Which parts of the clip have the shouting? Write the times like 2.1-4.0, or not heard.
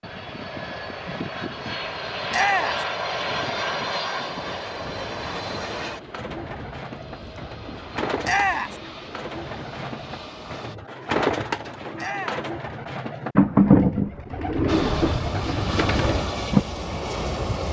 2.3-2.9, 8.2-8.8, 11.9-12.4.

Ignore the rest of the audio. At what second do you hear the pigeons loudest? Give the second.
14 s.